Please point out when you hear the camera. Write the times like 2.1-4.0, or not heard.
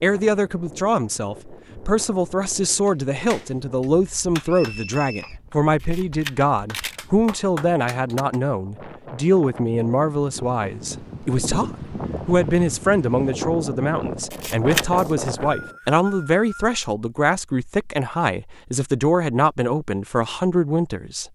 5.8-7.0, 14.3-14.8.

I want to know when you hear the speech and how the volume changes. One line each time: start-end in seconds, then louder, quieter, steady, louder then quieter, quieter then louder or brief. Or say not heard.
0.0-21.3 steady.